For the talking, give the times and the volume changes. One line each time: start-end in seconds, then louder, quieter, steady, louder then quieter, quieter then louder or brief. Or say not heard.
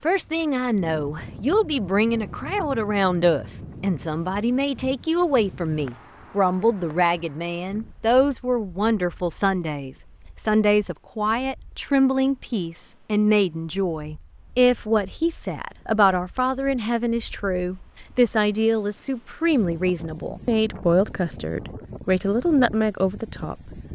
0.0-23.8 steady.